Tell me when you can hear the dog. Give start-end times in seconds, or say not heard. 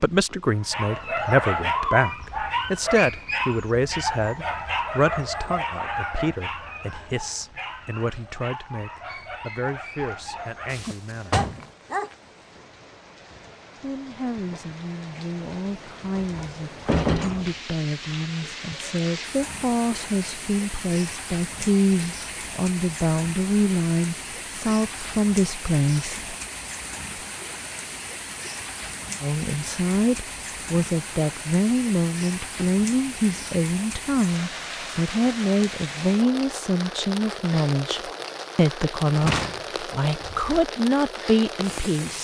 0.6-12.2.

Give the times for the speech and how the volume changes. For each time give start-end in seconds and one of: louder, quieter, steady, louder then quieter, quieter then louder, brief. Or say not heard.
0.0-11.4 quieter
13.8-26.4 louder
29.2-42.2 steady.